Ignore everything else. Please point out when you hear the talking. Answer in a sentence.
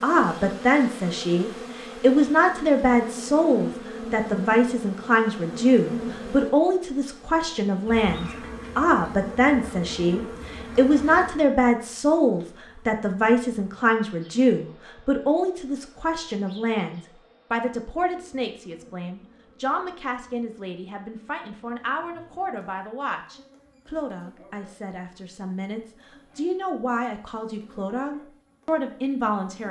You can hear the talking from 0.0 to 29.6 s.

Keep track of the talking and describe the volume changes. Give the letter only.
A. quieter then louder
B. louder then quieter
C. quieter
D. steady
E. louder
C.